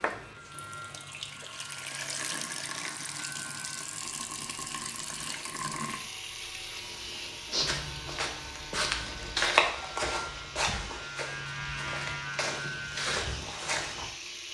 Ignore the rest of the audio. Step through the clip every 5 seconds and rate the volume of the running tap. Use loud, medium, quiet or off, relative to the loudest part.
loud, loud, medium.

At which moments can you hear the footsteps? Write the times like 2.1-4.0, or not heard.
7.5-14.1.